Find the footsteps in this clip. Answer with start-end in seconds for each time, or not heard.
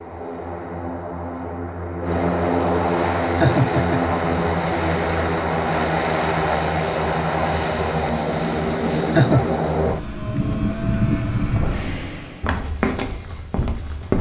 11.3-14.1.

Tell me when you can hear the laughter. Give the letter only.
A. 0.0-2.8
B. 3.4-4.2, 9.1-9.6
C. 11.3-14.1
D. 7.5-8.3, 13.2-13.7
B.